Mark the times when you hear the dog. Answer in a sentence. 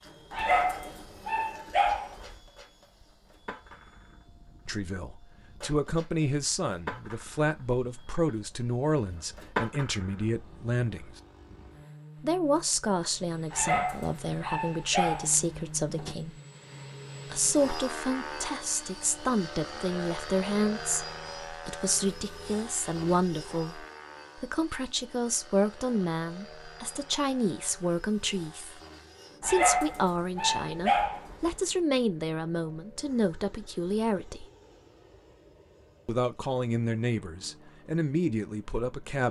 The dog can be heard from 0.3 to 2.4 s, from 13.5 to 16.1 s and from 29.4 to 31.6 s.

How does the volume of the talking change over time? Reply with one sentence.
The volume of the talking stays about the same.